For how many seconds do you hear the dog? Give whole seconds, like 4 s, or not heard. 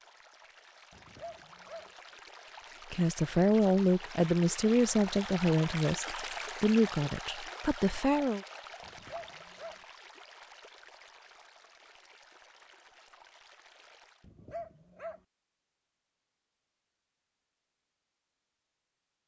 3 s.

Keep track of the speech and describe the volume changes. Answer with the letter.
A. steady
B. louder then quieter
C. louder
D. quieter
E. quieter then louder
D.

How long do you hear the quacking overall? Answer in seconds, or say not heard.
not heard.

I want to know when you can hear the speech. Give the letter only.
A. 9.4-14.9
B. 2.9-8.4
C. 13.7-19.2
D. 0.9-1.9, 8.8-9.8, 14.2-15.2
B.